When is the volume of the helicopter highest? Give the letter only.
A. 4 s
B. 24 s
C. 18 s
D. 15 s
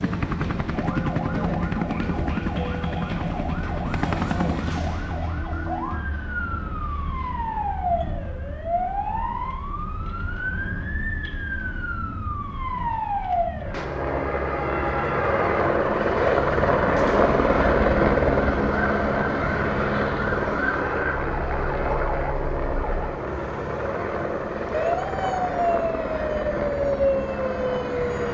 C.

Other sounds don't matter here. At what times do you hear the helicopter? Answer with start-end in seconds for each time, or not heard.
0.0-5.0, 13.6-28.2.